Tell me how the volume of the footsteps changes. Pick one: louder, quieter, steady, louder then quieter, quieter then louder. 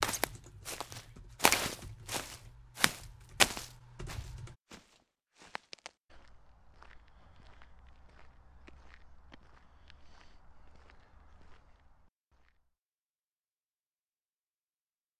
quieter.